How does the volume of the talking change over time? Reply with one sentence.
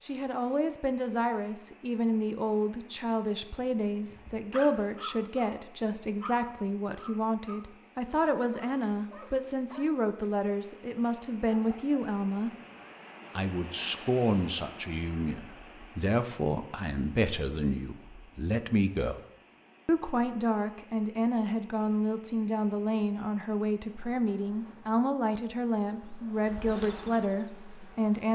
The loudness of the talking stays about the same.